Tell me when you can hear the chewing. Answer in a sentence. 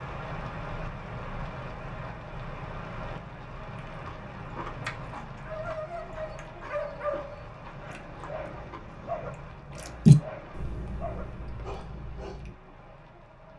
You can hear the chewing from 3.9 to 12.8 s.